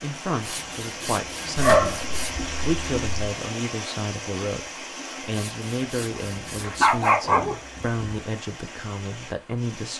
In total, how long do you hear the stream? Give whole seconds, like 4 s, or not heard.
10 s.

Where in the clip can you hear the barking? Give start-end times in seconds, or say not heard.
1.6-3.0, 6.6-8.2.